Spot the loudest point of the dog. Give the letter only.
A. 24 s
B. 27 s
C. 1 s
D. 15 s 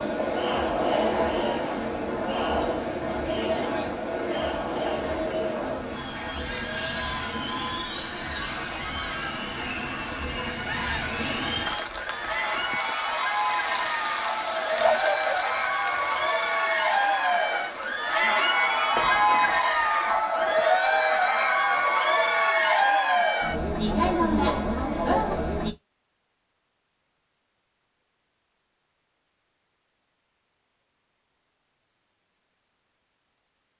D.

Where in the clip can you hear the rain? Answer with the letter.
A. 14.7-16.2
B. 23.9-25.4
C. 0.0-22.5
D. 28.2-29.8
C.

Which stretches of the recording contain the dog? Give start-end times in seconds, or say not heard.
14.7-16.2.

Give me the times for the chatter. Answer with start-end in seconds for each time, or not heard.
0.0-25.7.